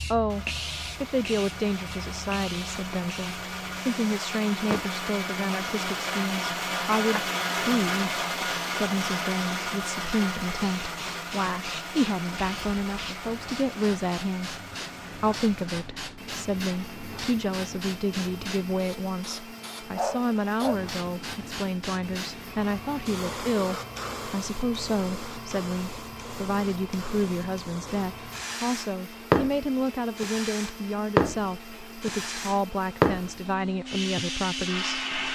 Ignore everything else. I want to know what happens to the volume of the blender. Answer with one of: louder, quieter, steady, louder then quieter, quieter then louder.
quieter.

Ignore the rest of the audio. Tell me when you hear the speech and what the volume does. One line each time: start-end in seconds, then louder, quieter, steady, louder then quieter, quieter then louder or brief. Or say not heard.
0.1-14.6 steady
15.2-35.0 steady.